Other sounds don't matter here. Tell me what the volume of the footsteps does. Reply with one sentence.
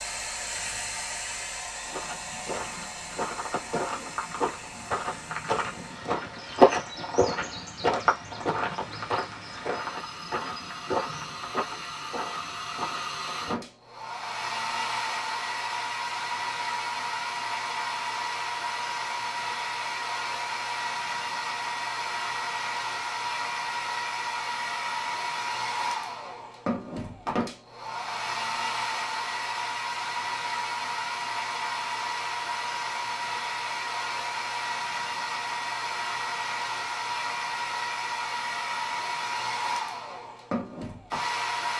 The volume of the footsteps goes up, then down.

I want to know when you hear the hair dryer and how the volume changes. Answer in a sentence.
You can hear the hair dryer from 0.0 to 41.7 s, getting louder.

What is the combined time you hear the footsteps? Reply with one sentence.
You can hear the footsteps for 12 seconds altogether.